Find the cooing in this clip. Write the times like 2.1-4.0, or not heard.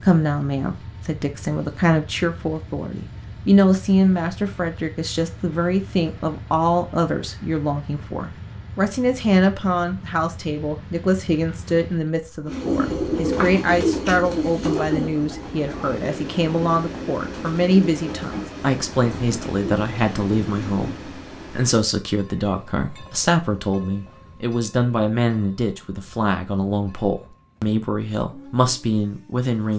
12.4-21.1.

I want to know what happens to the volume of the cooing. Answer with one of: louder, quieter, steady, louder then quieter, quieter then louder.
quieter.